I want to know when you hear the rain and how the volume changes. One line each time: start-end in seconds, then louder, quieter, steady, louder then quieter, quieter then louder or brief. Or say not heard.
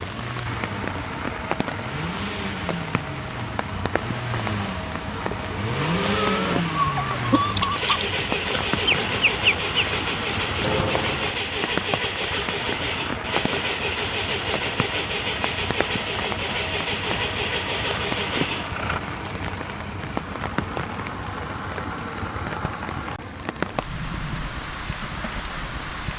0.0-26.1 steady.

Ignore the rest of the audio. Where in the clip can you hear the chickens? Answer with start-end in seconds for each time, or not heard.
5.1-11.3.